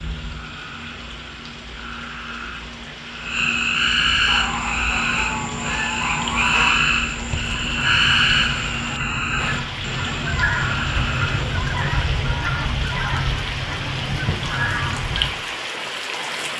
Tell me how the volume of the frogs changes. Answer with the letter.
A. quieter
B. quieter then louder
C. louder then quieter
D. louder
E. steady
C.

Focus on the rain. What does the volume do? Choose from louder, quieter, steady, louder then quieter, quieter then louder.
louder.